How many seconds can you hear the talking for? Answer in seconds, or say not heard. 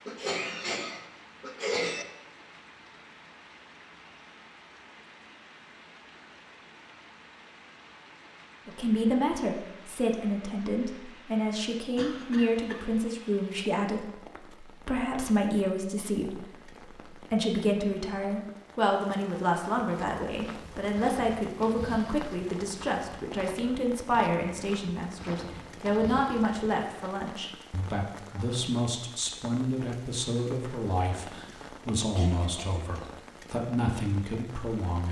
26 s.